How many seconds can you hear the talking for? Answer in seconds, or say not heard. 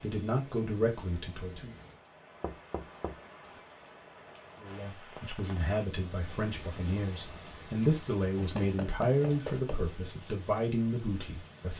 9 s.